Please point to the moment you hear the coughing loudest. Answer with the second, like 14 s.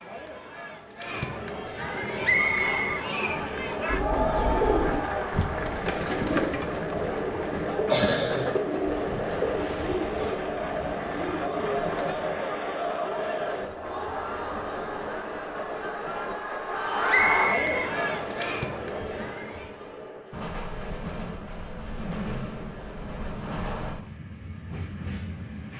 8 s.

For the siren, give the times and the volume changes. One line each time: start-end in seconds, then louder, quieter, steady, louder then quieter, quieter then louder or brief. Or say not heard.
not heard.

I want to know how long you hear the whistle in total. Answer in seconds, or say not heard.
2 s.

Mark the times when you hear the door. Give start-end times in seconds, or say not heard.
not heard.